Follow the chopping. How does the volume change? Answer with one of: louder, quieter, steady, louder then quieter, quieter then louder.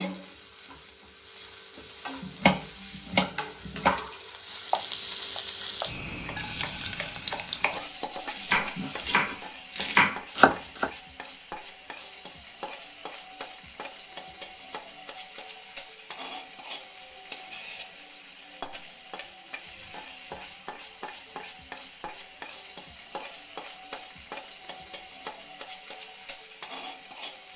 quieter then louder.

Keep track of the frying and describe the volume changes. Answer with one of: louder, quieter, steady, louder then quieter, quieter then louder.
quieter.